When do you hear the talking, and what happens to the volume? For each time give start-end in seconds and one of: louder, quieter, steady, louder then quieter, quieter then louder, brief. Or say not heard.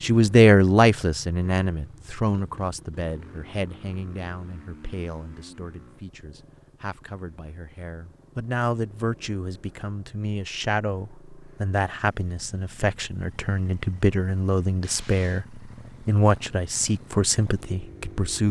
0.0-15.4 quieter then louder
16.1-18.4 brief.